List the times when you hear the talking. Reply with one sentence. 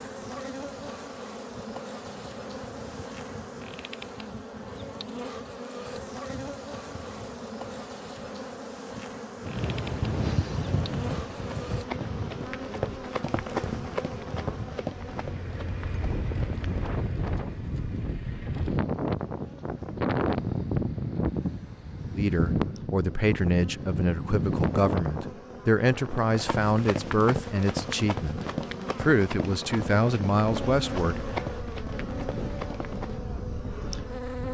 The talking can be heard from 22.1 to 28.4 s and from 29.0 to 31.2 s.